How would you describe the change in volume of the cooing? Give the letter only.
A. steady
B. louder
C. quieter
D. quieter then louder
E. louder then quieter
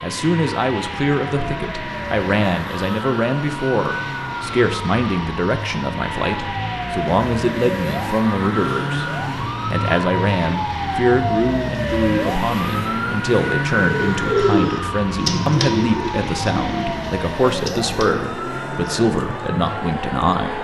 C.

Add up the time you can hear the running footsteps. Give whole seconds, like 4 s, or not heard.
not heard.